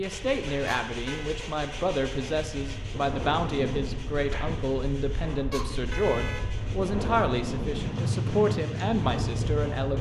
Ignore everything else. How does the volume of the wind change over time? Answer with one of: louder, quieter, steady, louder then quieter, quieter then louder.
louder.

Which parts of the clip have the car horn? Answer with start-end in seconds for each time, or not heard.
0.7-1.4, 5.5-6.5.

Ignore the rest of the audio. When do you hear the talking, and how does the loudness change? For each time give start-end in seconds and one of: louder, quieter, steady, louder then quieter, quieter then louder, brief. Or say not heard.
0.0-9.9 steady.